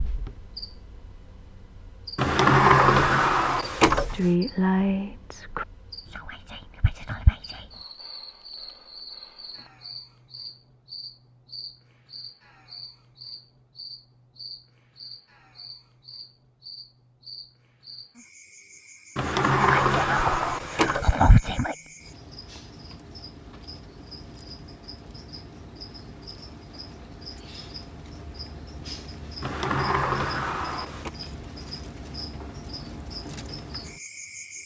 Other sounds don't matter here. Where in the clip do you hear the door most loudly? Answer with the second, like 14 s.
3 s.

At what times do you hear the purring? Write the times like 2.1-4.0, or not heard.
not heard.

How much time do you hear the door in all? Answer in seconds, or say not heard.
6 s.